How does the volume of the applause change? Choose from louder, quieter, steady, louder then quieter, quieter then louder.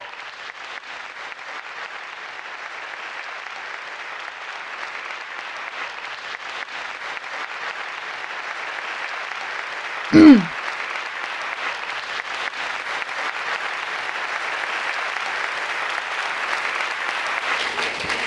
louder.